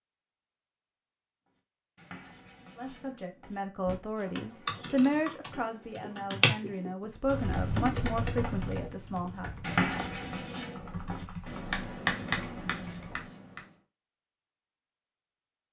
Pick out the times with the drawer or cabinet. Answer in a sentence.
The drawer or cabinet can't be heard in this clip.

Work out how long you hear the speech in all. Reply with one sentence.
The speech can be heard for 7 seconds in total.